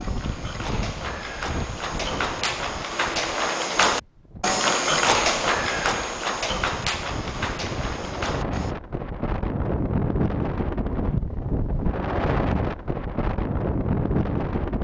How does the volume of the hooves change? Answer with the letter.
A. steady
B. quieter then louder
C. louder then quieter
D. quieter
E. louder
C.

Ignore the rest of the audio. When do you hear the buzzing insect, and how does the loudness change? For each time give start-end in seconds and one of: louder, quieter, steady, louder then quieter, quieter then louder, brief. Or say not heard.
not heard.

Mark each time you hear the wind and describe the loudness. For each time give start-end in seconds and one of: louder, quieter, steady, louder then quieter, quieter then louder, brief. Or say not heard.
0.0-14.7 quieter then louder.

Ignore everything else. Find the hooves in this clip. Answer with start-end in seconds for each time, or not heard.
0.0-8.8.